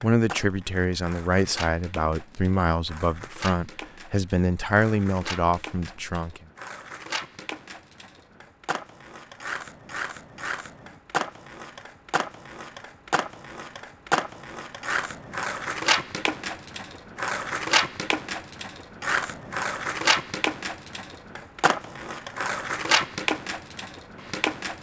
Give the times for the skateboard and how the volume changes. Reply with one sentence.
The skateboard can be heard from 0.0 to 24.7 s, getting louder.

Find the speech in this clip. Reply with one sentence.
You can hear the speech from 0.0 to 6.4 s.